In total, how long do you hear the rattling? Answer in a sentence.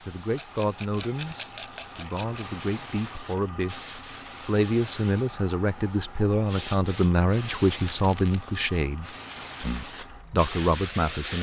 You can hear the rattling for 3 seconds altogether.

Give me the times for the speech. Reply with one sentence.
The speech can be heard from 0.0 to 11.3 s.